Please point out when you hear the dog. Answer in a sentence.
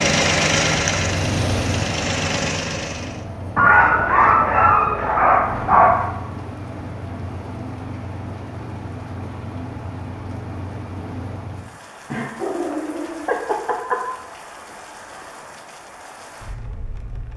The dog can be heard from 3.5 to 6.0 s and from 12.1 to 14.1 s.